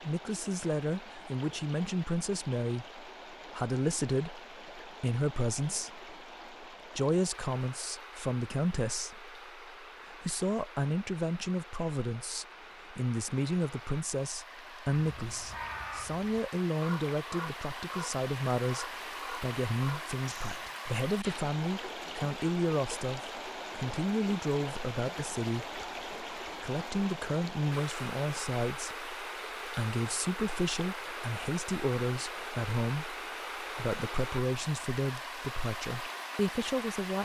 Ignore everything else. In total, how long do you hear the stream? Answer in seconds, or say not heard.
37 s.